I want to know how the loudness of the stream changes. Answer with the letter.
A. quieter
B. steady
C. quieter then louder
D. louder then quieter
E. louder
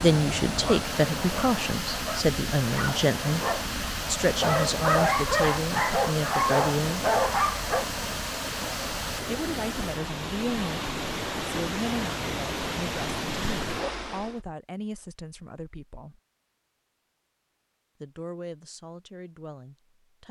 B.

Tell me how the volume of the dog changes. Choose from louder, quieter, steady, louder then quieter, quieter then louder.
louder.